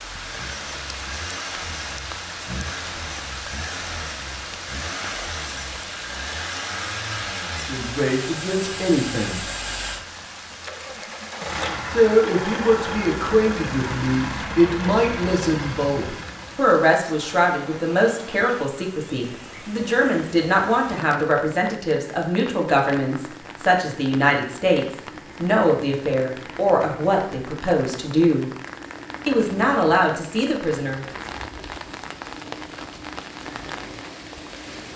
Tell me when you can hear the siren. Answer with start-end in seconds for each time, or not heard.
not heard.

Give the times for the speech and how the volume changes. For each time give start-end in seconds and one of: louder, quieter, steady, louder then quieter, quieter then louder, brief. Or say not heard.
7.7-9.4 brief
11.9-28.5 steady
29.2-31.0 brief.